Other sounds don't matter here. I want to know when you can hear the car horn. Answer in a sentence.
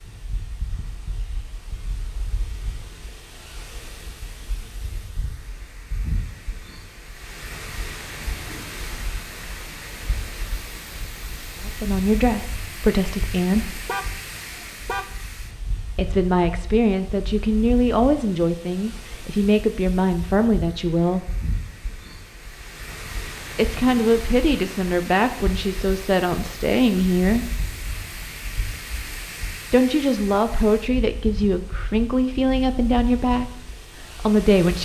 You can hear the car horn from 13.7 to 15.2 s.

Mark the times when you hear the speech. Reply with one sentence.
You can hear the speech from 11.6 to 13.8 s, from 15.9 to 21.2 s, from 23.5 to 27.5 s, from 29.7 to 33.5 s and from 34.1 to 34.7 s.